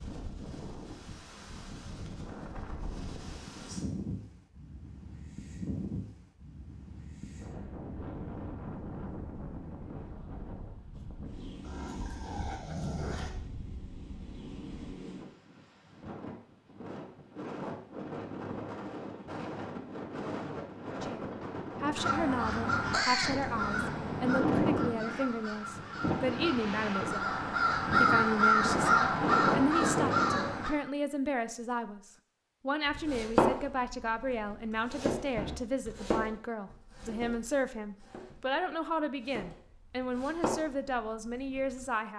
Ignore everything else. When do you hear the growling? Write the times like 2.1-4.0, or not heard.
11.6-13.3.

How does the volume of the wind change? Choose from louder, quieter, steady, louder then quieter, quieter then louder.
louder.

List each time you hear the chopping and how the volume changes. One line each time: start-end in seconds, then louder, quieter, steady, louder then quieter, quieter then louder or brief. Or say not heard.
32.9-41.9 quieter then louder.